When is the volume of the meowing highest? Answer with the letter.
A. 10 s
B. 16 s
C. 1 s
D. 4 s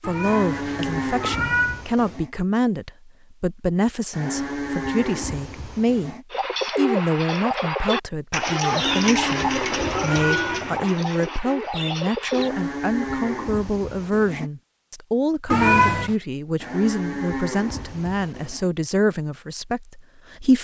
B.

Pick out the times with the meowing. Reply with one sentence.
You can hear the meowing from 0.0 to 1.8 s, from 8.8 to 10.9 s and from 15.5 to 16.1 s.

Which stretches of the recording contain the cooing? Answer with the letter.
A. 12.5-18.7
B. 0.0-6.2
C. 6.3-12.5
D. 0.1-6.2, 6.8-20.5
C.